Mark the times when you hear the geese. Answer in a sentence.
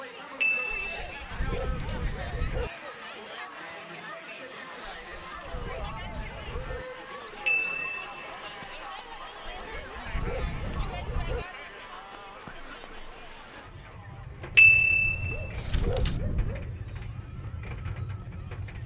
The geese can't be heard in this clip.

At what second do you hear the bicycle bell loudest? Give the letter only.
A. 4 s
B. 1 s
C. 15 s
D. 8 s
C.